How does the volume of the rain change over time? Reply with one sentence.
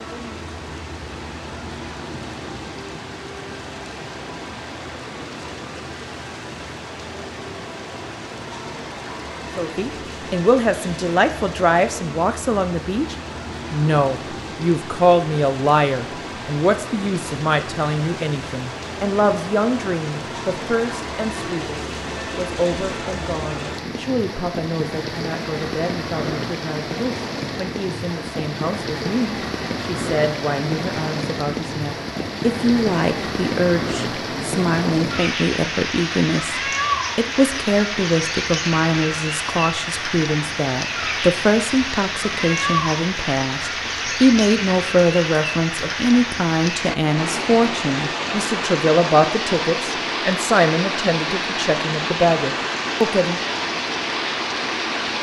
The loudness of the rain goes up.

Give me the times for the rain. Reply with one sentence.
The rain can be heard from 0.0 to 55.1 s.